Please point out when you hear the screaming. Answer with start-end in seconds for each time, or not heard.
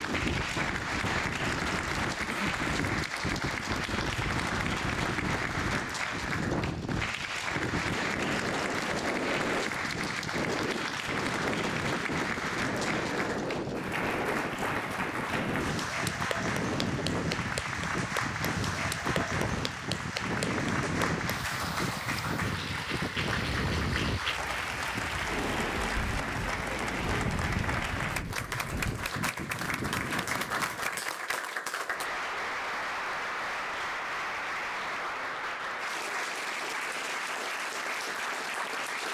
not heard.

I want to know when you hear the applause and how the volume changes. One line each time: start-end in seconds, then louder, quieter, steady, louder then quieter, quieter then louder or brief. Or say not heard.
0.0-39.0 steady.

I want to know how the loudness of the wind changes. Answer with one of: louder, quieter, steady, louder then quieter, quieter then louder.
steady.